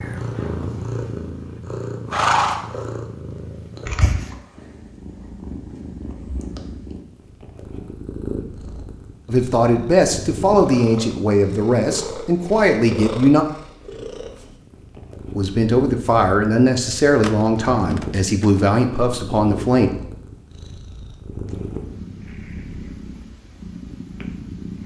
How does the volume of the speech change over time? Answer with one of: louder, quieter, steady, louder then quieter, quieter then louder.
steady.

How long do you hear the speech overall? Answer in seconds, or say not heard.
9 s.